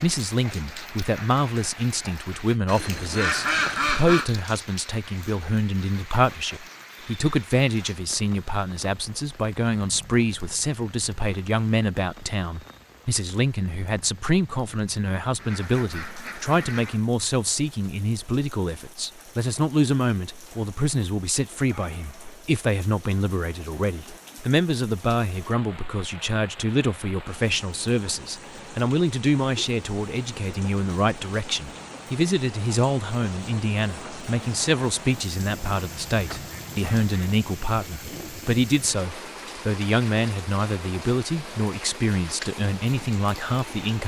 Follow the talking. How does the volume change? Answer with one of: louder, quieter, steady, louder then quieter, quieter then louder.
steady.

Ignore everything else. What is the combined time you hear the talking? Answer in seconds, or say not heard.
44 s.